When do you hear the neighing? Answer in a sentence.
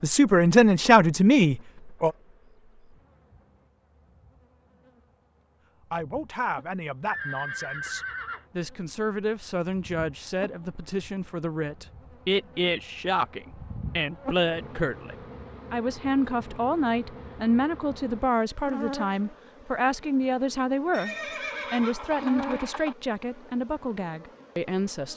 The neighing can be heard from 7.0 to 8.4 s and from 20.9 to 22.9 s.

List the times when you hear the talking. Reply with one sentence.
The talking can be heard from 0.0 to 2.1 s and from 5.9 to 25.1 s.